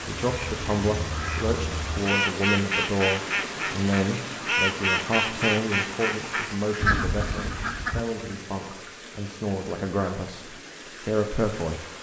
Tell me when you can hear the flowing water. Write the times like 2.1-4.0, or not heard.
0.0-11.9.